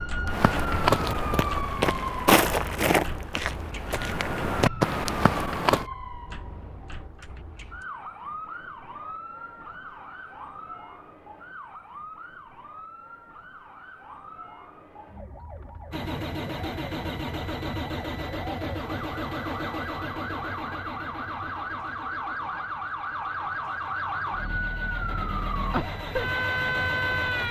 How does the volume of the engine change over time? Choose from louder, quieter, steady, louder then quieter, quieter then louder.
quieter then louder.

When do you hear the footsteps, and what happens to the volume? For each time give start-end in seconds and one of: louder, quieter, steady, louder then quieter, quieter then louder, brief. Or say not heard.
0.2-5.8 quieter then louder.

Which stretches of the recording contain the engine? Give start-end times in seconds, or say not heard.
15.9-27.4.